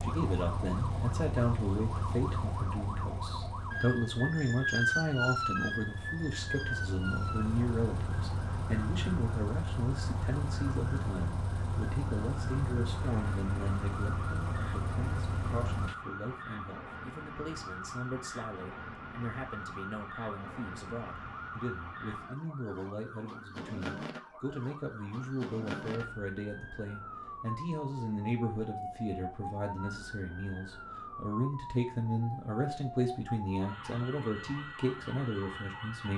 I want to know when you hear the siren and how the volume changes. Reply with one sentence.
The siren can be heard from 0.0 to 36.1 s, getting quieter.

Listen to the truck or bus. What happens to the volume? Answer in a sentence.
The loudness of the truck or bus goes down, then up.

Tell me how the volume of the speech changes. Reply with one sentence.
The volume of the speech goes down, then up.